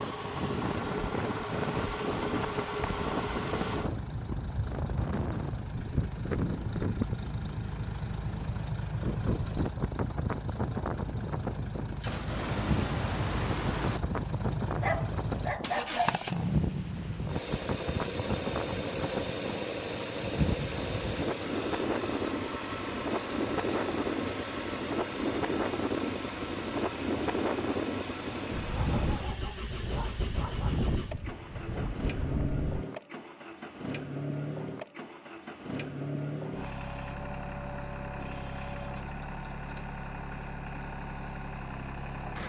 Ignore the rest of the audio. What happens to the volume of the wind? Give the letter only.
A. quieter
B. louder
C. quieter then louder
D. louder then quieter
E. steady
E.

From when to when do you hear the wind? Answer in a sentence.
You can hear the wind from 0.0 to 32.8 s.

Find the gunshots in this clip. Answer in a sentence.
The gunshots can be heard from 12.0 to 14.0 s.